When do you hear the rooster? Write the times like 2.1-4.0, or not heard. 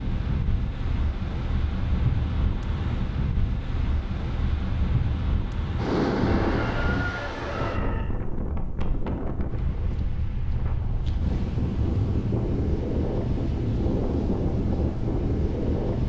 6.2-8.1.